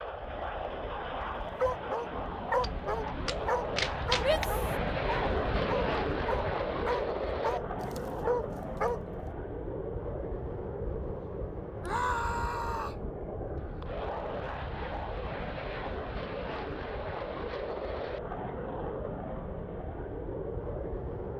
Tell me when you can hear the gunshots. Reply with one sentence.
You can hear the gunshots from 2.6 to 4.5 s.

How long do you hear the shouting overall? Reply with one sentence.
You can hear the shouting for 2 seconds altogether.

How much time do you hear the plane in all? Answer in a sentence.
The plane can be heard for 21 seconds in total.